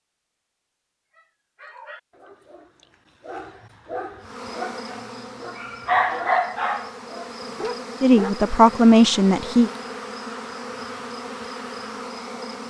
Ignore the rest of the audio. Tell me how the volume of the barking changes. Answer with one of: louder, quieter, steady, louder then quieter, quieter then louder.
louder then quieter.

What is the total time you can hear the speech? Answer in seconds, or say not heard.
2 s.